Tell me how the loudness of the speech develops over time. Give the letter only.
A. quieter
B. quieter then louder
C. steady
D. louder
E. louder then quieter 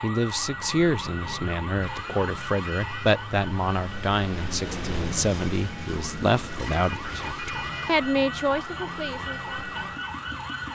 C.